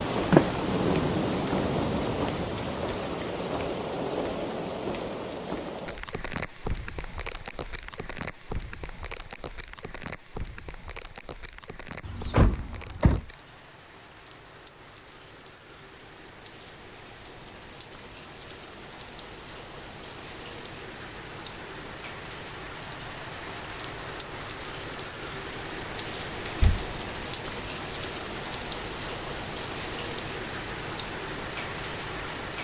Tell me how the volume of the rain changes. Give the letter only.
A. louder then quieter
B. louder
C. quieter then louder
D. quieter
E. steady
C.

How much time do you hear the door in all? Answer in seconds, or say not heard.
3 s.